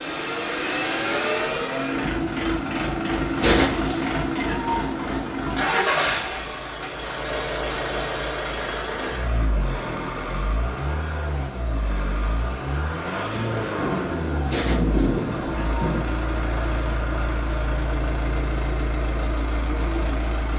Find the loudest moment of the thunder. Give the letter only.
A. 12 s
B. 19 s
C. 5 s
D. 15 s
D.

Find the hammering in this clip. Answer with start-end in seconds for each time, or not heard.
not heard.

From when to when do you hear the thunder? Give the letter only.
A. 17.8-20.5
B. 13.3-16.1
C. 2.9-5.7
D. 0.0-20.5
B.